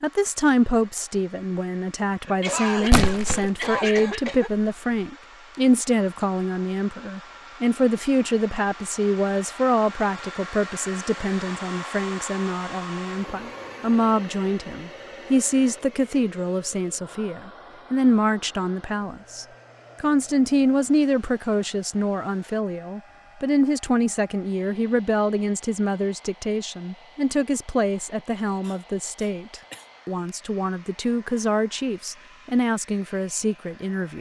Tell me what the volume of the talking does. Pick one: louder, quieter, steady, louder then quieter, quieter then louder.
steady.